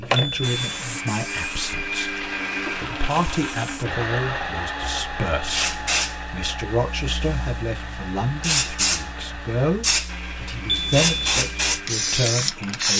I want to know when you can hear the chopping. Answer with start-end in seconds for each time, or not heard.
not heard.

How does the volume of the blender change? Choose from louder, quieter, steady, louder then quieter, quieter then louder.
quieter.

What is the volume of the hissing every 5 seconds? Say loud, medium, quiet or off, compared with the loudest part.
medium, loud, loud.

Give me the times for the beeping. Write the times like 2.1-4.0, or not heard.
0.1-0.8, 10.7-11.4.